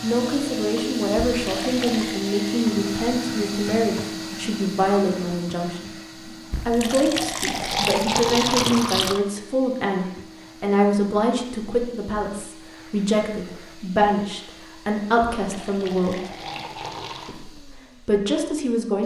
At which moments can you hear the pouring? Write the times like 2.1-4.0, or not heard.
1.4-2.2, 6.5-9.2, 15.3-17.4.